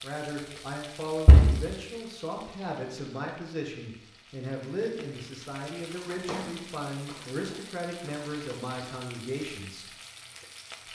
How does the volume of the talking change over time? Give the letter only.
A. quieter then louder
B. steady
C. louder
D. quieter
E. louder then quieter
B.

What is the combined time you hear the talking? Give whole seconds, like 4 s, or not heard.
10 s.